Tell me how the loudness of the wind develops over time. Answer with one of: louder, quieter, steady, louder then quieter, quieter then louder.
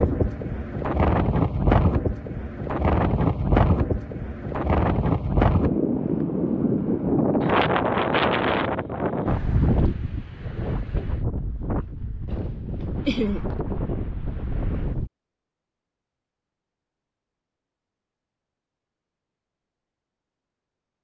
quieter.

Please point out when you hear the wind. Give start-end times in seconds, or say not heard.
0.0-15.1.